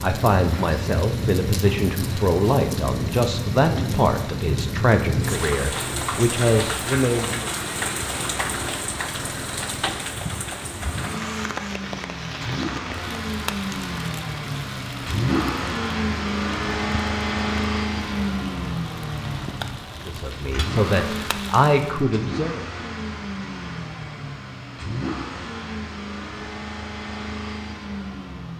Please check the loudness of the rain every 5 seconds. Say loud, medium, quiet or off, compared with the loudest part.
loud, loud, medium, medium, medium, off.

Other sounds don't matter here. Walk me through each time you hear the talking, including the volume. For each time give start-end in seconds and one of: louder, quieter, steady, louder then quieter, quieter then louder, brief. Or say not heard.
0.0-7.5 steady
20.1-22.6 brief.